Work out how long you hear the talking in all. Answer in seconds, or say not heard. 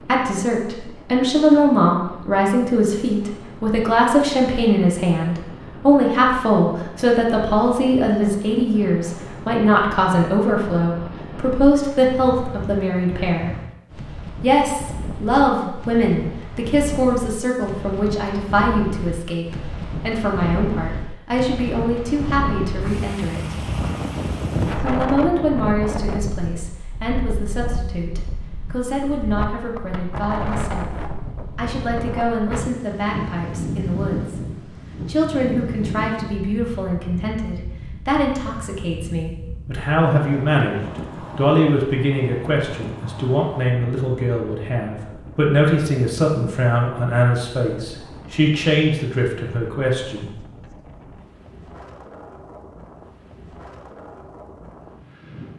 48 s.